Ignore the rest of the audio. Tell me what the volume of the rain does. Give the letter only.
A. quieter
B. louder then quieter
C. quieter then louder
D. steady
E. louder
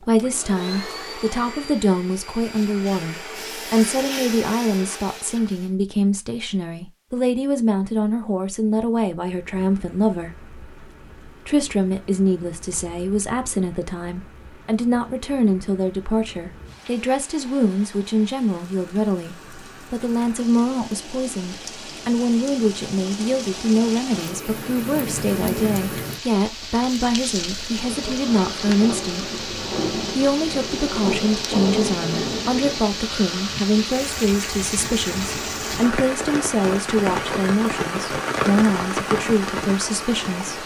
E.